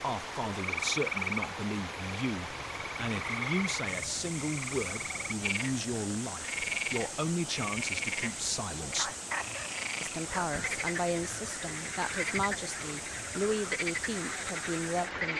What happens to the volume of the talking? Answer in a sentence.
The loudness of the talking stays about the same.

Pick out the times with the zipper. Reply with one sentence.
The zipper can't be heard in this clip.